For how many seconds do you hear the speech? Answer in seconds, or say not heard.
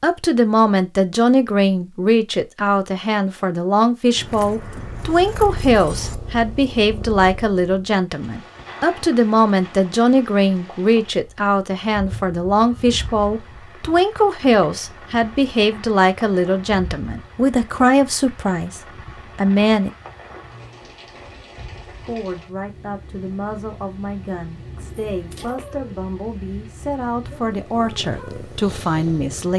27 s.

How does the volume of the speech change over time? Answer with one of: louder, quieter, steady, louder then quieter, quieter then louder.
quieter.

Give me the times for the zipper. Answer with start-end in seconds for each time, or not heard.
not heard.